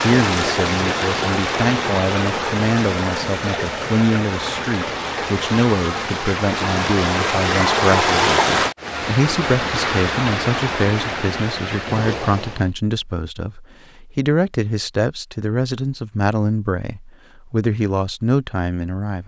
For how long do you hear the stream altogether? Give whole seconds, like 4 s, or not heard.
13 s.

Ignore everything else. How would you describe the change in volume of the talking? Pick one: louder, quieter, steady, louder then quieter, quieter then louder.
steady.